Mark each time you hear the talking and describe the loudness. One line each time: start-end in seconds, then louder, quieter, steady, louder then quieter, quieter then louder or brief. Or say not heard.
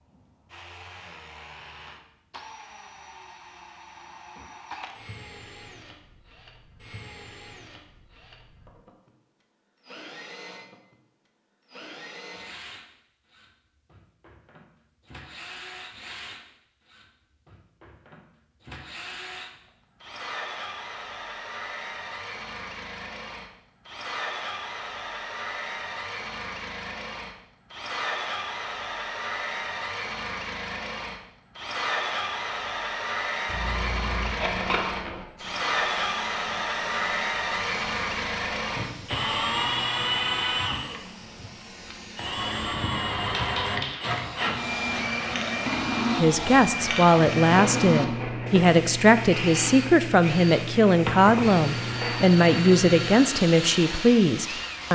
46.1-54.8 steady.